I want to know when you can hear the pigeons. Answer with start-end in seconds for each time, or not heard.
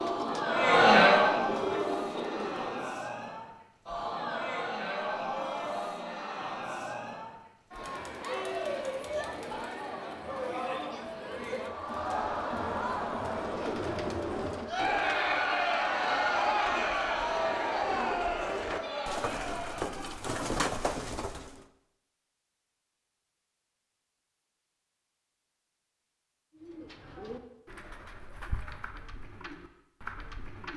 0.0-3.0, 13.2-21.6, 26.5-30.7.